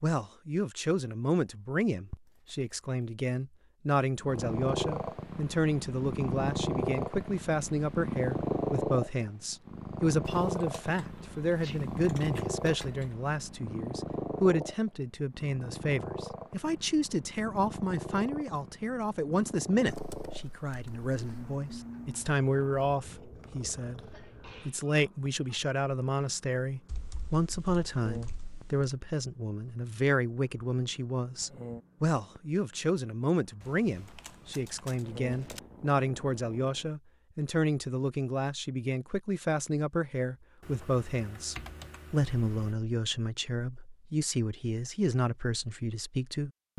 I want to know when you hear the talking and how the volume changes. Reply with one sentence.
The talking can be heard from 0.0 to 46.7 s, at a steady volume.